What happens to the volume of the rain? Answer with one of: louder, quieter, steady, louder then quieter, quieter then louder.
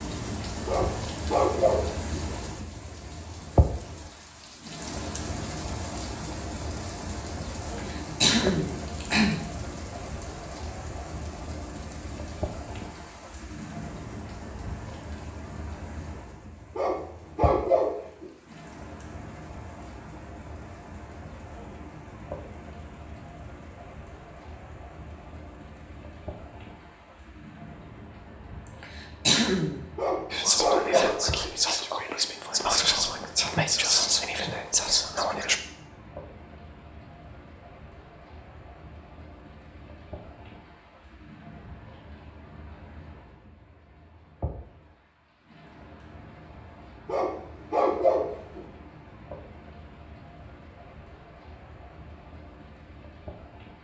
quieter.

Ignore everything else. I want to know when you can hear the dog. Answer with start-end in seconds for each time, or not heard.
0.7-2.2, 16.8-18.3, 29.9-31.5, 47.0-48.6.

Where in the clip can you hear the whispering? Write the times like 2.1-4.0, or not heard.
30.3-35.6.